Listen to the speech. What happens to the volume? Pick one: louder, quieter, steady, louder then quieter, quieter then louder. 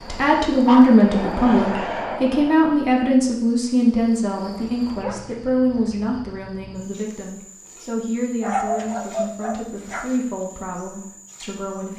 quieter.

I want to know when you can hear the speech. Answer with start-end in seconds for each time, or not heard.
0.0-11.9.